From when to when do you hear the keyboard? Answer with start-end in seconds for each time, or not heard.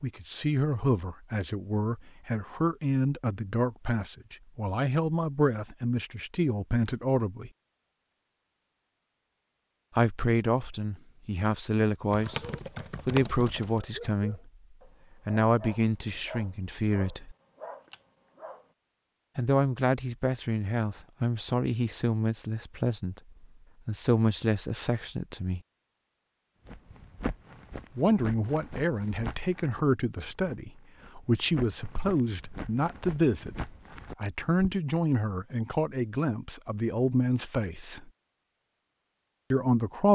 12.1-13.8.